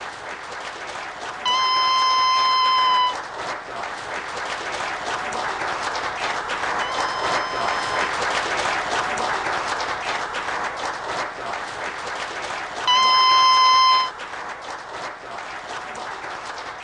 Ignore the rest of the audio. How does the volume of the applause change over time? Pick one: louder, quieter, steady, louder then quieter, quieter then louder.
louder then quieter.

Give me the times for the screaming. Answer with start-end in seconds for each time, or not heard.
1.4-3.1, 6.8-8.1, 12.8-14.1.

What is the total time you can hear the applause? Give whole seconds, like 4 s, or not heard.
17 s.